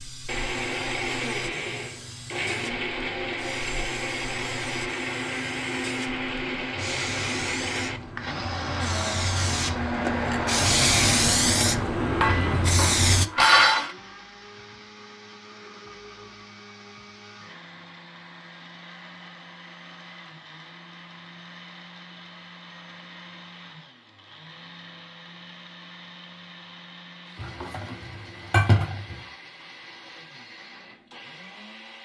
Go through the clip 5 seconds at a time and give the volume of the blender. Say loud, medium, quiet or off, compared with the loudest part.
loud, loud, loud, quiet, quiet, quiet, quiet.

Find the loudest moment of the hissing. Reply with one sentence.
The loudest moment of the hissing is at 11 seconds.